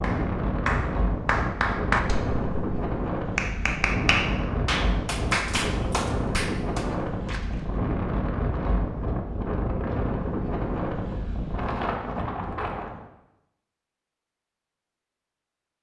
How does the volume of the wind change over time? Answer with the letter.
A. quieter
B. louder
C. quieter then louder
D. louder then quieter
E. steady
E.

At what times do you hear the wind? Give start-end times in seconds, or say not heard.
0.0-13.1.